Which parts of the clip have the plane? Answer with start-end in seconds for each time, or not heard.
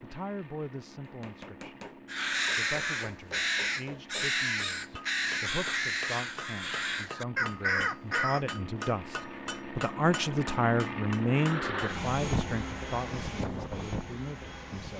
0.0-14.9.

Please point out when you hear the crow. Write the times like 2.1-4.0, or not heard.
2.1-8.6.